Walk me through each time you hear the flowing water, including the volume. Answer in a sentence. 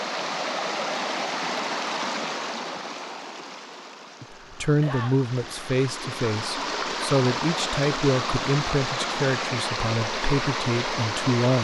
You can hear the flowing water from 0.0 to 11.6 s, getting quieter then louder.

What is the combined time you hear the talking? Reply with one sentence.
The talking can be heard for 7 seconds in total.